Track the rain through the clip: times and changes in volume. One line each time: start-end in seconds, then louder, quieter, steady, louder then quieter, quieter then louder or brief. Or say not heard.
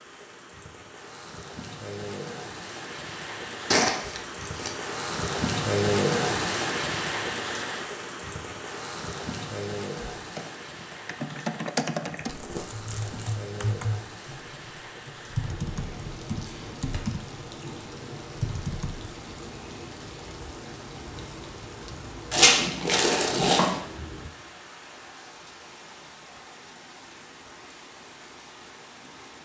0.0-29.4 quieter.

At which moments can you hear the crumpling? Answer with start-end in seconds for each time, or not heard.
3.7-4.7, 12.2-13.3, 22.3-23.8.